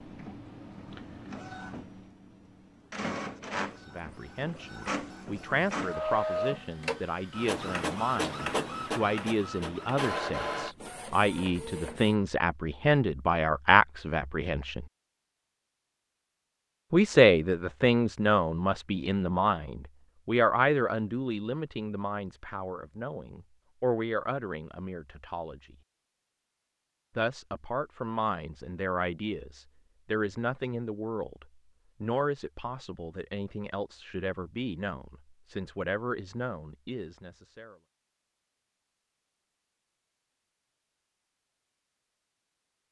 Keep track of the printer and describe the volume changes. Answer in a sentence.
The volume of the printer goes up.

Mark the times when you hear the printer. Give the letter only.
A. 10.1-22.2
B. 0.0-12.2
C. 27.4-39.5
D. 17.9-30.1
B.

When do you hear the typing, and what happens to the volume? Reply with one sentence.
The typing can't be heard in this clip.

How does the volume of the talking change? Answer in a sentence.
The loudness of the talking goes up, then down.